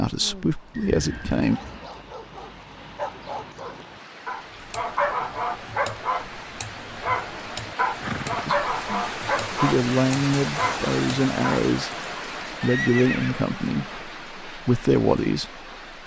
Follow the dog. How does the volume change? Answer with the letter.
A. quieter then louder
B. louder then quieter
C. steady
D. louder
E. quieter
D.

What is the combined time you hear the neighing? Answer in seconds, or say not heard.
3 s.